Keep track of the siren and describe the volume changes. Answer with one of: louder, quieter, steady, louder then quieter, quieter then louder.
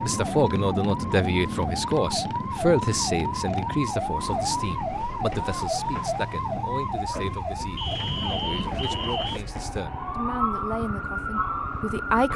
steady.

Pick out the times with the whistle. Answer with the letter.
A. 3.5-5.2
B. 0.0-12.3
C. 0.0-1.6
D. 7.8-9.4
D.